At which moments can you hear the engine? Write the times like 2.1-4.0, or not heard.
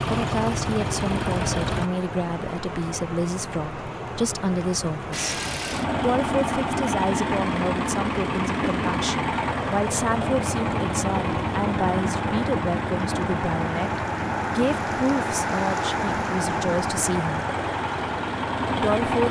0.0-1.9, 5.1-19.2.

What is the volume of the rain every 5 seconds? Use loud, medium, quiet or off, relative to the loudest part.
medium, medium, loud, loud.